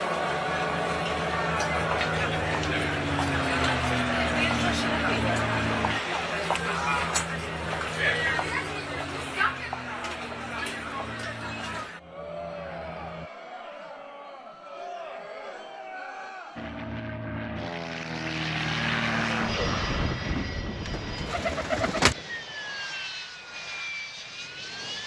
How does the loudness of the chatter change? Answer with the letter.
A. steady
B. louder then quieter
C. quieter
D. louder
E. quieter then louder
C.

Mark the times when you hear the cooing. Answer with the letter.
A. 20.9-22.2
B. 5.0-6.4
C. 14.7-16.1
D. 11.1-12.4
A.